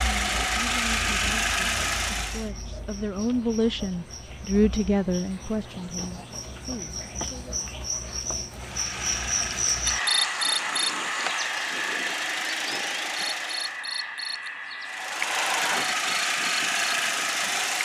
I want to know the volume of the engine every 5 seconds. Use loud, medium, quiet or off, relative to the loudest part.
loud, medium, medium, loud.